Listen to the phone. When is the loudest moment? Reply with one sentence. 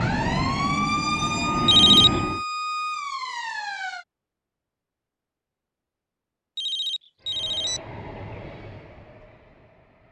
The volume of the phone peaks at 2 seconds.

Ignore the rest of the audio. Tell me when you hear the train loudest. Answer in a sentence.
The loudest moment of the train is at 2 seconds.